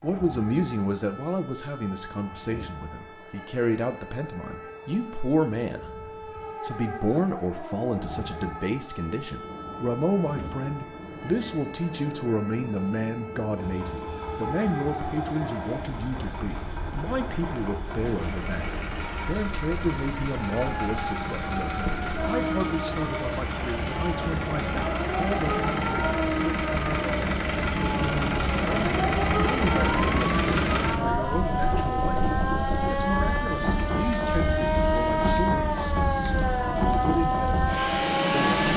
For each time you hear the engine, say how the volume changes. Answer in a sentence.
The engine can be heard from 13.5 to 31.0 s, getting louder.